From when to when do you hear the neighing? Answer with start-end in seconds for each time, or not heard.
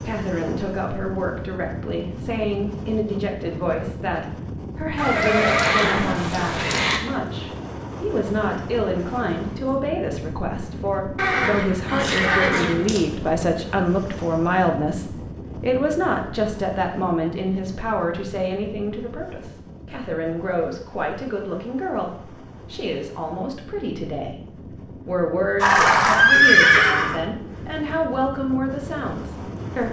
5.0-7.0, 11.2-13.0, 25.6-27.2.